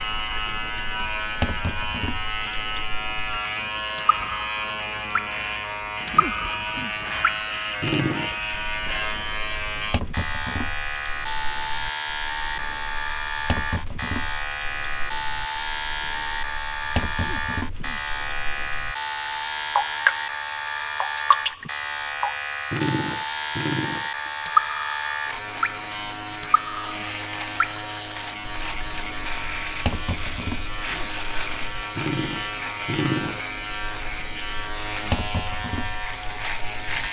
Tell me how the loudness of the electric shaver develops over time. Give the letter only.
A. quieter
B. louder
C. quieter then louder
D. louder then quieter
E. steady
E.